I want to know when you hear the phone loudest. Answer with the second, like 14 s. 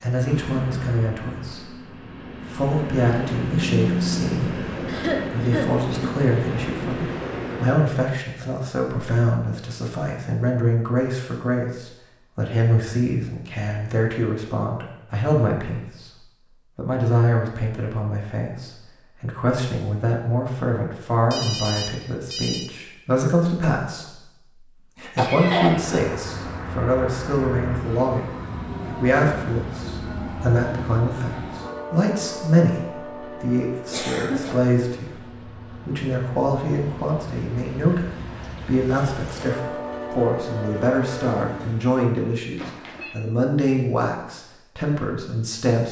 4 s.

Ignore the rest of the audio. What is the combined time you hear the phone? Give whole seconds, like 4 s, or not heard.
3 s.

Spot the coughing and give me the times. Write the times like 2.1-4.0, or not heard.
4.8-6.2, 25.1-26.0, 33.9-34.6.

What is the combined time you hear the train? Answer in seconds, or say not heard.
24 s.